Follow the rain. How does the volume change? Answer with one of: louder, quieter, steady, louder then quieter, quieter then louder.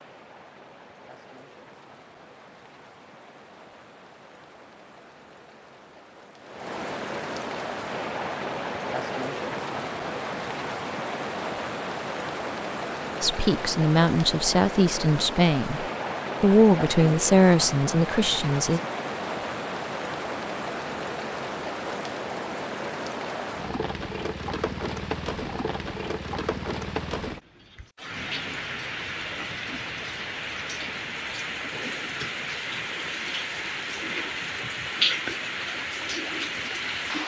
louder.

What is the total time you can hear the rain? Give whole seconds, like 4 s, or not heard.
37 s.